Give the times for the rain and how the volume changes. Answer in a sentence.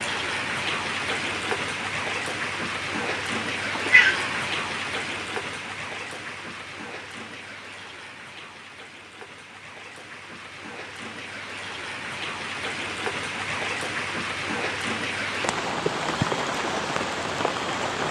You can hear the rain from 0.0 to 18.0 s, getting quieter then louder.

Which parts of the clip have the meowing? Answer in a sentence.
You can hear the meowing from 3.8 to 4.3 s.